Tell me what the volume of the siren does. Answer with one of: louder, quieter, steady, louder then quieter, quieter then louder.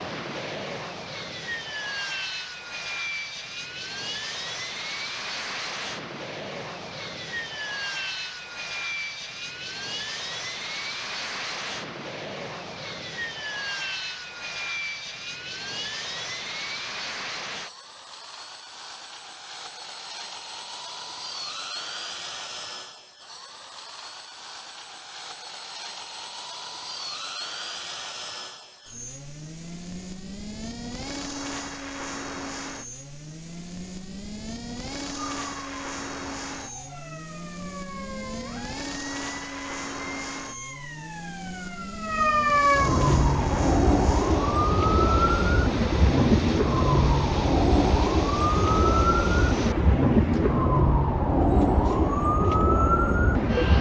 louder.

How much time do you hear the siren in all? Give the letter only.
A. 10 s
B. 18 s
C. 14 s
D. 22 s
B.